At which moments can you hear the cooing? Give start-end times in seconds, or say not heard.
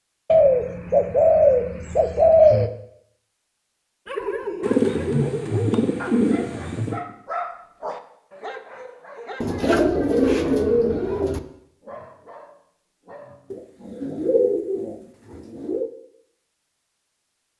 0.2-2.7, 4.7-7.0, 9.4-11.4, 13.5-15.9.